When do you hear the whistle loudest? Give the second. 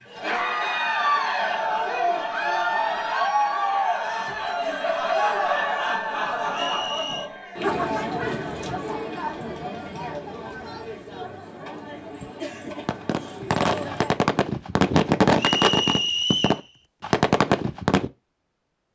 16 s.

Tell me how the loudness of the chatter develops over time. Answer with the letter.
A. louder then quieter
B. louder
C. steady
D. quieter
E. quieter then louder
D.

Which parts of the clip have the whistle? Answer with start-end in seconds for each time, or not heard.
6.5-7.3, 15.3-16.6.